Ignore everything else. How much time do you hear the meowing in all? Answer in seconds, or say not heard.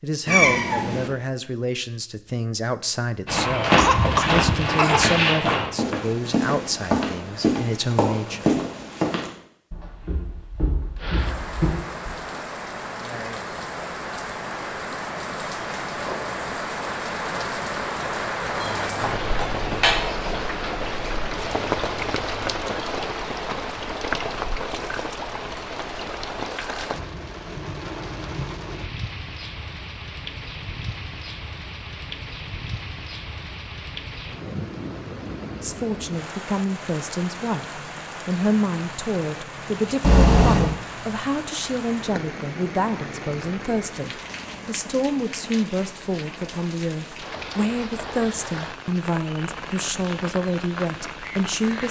3 s.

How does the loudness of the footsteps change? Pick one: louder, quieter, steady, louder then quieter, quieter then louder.
quieter.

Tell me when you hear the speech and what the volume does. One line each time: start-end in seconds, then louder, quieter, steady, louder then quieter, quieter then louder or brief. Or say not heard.
0.0-8.6 steady
35.6-51.8 steady.